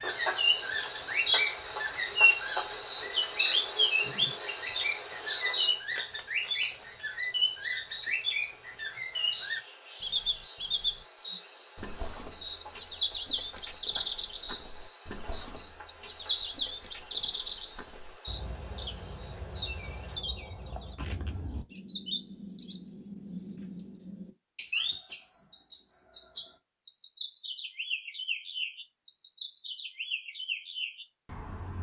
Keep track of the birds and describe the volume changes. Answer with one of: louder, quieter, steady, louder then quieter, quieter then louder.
quieter.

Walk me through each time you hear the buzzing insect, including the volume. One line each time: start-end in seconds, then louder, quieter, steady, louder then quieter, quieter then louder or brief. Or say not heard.
0.0-20.2 quieter.